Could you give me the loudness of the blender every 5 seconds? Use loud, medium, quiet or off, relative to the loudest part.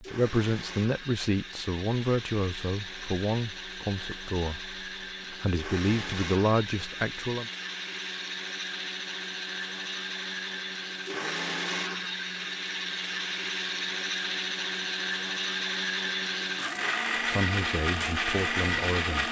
medium, medium, loud, loud.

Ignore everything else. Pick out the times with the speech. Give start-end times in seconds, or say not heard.
0.0-7.5, 17.2-19.2.